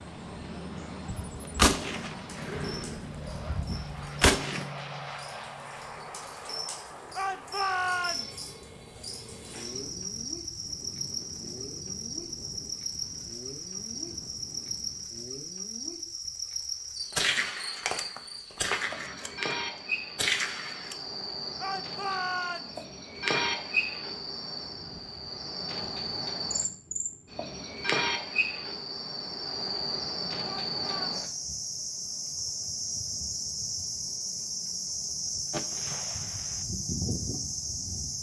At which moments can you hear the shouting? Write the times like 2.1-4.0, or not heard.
7.2-8.4, 21.6-22.8, 30.4-31.1.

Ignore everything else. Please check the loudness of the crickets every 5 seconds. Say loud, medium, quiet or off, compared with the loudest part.
quiet, medium, loud, loud, loud, loud, loud, loud.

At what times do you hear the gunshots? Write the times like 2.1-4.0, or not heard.
1.1-4.7, 17.1-19.6, 20.1-20.9, 35.5-36.6.